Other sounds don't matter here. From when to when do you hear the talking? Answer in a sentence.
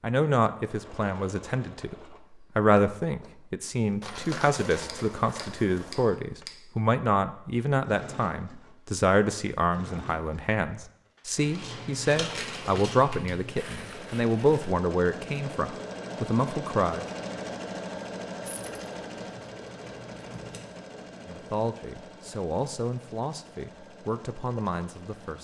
The talking can be heard from 0.0 to 1.9 s, from 2.5 to 17.1 s and from 21.2 to 25.3 s.